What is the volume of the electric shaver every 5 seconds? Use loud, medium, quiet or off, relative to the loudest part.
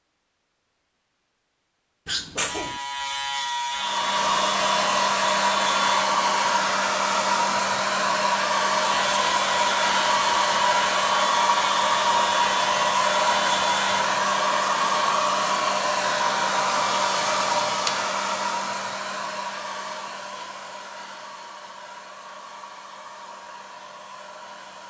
loud, loud, loud, off, off.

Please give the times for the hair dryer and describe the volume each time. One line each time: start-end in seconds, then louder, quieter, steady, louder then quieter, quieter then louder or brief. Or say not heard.
3.7-24.8 quieter.